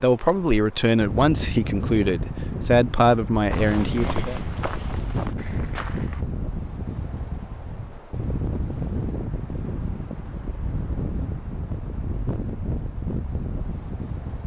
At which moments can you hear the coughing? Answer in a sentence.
You can't hear the coughing here.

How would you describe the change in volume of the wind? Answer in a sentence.
The loudness of the wind stays about the same.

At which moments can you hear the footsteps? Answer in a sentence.
The footsteps can be heard from 3.5 to 6.2 s.